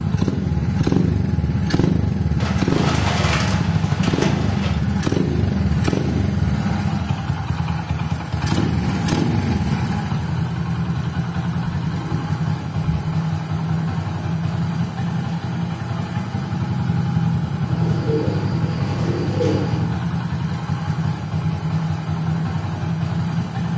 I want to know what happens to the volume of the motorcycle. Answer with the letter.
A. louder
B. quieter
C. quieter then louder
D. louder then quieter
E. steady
E.